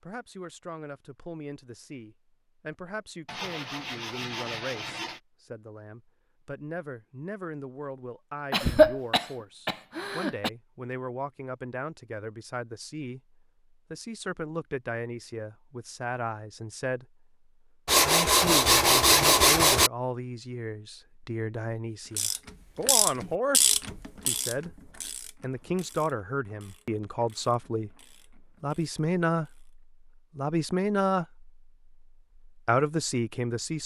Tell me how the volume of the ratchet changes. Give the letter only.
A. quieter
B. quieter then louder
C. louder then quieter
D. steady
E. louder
A.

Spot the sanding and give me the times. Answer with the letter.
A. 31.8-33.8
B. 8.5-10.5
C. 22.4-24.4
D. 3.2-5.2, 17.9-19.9
D.